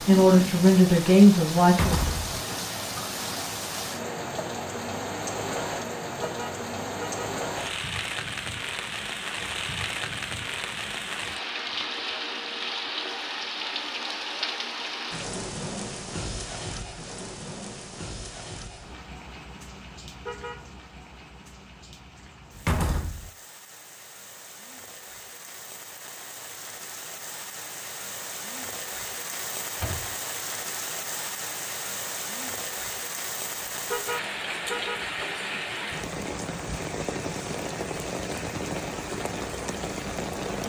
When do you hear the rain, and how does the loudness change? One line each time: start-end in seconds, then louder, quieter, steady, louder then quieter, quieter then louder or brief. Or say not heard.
0.0-40.6 quieter then louder.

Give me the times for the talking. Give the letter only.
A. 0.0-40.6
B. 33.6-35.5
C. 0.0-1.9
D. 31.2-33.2
C.